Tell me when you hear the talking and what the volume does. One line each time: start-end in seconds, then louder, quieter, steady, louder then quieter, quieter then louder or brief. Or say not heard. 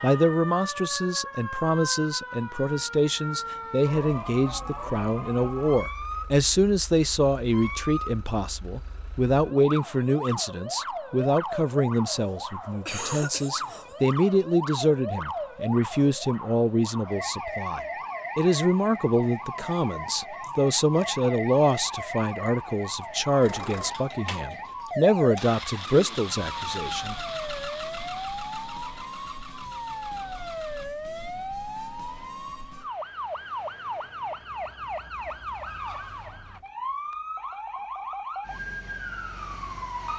0.0-27.1 steady.